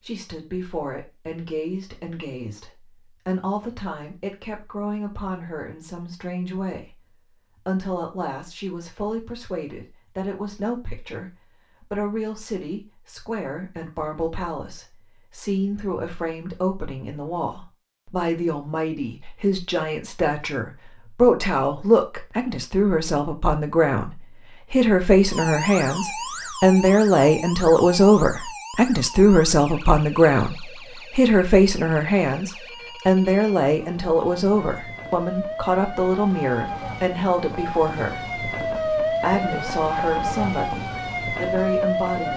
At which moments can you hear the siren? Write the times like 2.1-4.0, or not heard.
25.3-42.3.